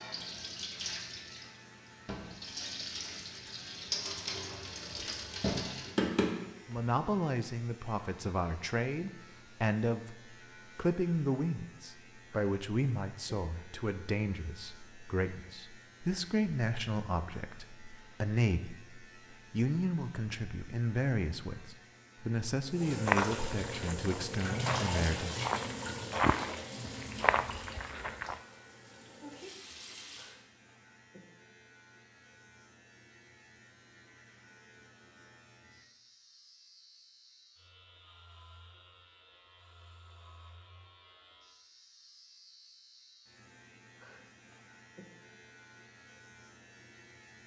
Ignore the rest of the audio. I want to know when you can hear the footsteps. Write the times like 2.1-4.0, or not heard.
23.1-28.4.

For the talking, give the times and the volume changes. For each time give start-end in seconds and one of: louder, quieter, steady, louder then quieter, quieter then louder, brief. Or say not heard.
6.7-25.4 steady.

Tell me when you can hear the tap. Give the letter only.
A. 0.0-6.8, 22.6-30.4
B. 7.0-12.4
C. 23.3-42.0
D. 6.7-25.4
A.